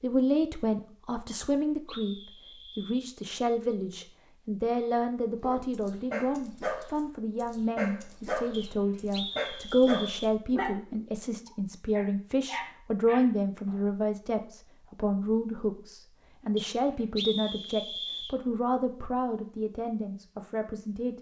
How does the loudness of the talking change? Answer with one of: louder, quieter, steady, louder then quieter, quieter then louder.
steady.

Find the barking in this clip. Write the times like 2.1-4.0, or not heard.
5.4-13.8.